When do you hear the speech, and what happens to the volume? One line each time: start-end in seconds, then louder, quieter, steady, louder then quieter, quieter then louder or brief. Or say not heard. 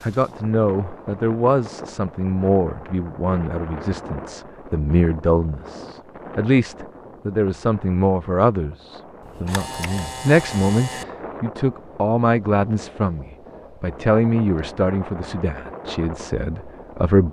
0.0-17.2 steady.